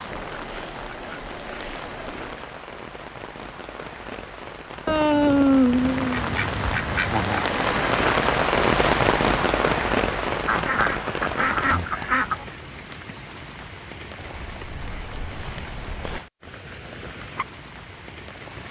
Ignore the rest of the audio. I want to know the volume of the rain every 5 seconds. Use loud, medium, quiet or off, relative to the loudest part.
quiet, loud, medium, quiet.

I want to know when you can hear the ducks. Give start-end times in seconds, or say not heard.
0.1-2.5, 4.8-7.5, 10.4-12.4, 14.2-16.2.